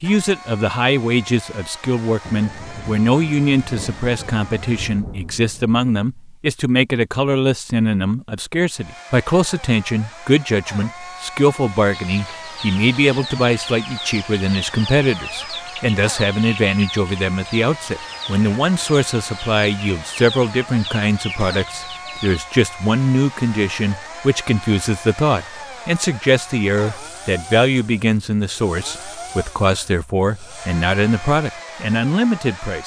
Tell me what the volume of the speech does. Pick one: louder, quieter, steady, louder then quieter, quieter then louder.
steady.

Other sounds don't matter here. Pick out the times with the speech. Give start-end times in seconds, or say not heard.
0.0-32.8.